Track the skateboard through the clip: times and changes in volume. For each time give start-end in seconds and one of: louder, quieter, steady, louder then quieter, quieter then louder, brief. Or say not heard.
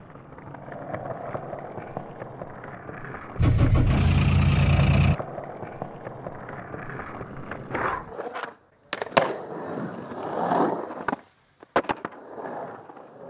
0.0-13.2 louder.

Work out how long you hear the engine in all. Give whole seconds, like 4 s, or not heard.
2 s.